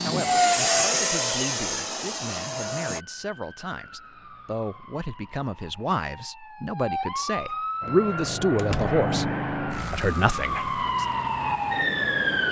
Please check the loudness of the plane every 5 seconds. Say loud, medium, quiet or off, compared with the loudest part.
loud, medium, quiet.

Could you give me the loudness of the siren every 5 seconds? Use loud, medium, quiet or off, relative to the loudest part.
quiet, medium, loud.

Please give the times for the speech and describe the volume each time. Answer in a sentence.
You can hear the speech from 0.0 to 11.1 s, getting louder.